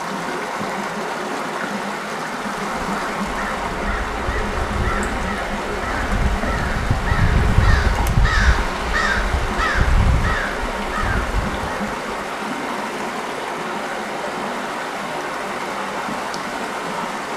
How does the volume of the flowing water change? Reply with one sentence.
The volume of the flowing water stays about the same.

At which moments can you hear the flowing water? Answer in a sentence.
The flowing water can be heard from 0.0 to 17.3 s.